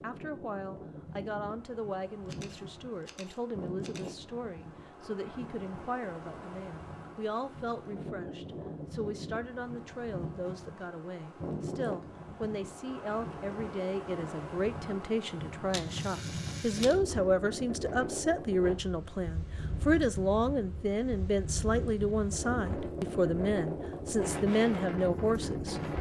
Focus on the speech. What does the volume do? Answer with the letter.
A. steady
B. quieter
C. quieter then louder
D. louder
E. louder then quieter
D.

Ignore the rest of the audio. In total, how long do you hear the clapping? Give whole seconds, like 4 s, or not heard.
not heard.